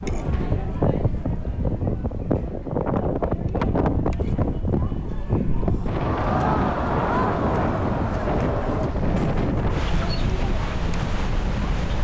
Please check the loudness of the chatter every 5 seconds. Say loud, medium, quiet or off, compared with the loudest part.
medium, loud, medium.